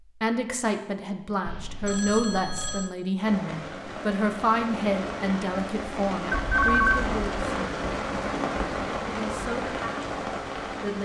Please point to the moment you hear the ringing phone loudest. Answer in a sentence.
The loudest moment of the ringing phone is at 7 seconds.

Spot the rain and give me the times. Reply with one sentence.
You can hear the rain from 3.1 to 11.0 s.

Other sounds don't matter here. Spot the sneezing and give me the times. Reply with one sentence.
The sneezing can't be heard in this clip.